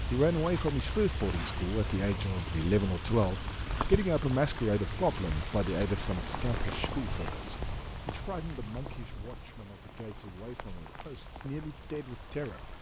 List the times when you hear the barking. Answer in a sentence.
The barking can't be heard in this clip.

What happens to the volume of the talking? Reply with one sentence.
The volume of the talking goes down.